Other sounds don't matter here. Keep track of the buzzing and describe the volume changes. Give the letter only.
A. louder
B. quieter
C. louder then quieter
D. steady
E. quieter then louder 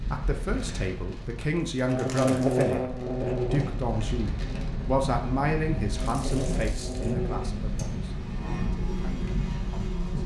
E.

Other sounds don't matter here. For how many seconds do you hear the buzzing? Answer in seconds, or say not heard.
8 s.